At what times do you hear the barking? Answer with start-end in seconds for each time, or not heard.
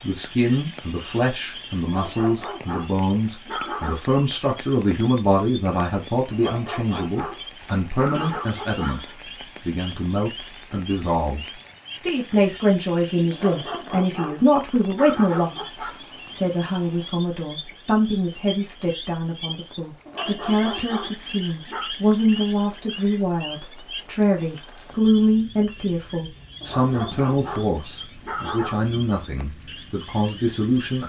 1.8-4.0, 6.3-9.2, 13.3-16.0, 20.1-21.9, 26.6-28.8.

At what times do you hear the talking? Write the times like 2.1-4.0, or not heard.
0.0-9.0, 9.7-31.0.